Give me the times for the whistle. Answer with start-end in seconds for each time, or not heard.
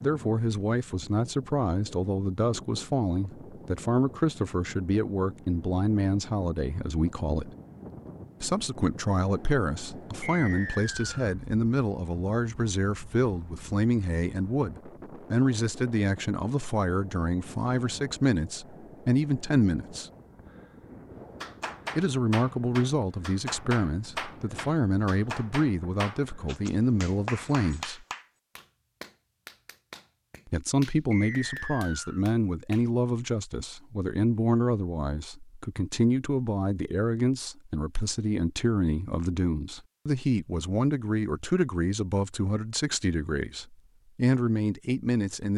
10.2-11.3, 31.1-32.2.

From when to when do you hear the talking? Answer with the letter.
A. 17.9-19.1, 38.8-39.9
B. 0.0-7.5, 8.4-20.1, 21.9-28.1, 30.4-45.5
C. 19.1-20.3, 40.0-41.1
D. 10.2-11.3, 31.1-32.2
B.